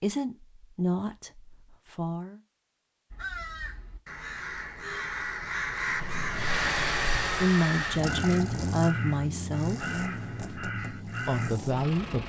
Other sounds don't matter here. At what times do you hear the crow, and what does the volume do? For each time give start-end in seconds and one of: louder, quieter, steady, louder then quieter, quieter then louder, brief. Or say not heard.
3.1-11.6 louder then quieter.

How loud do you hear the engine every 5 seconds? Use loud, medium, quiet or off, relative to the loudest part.
off, loud, medium.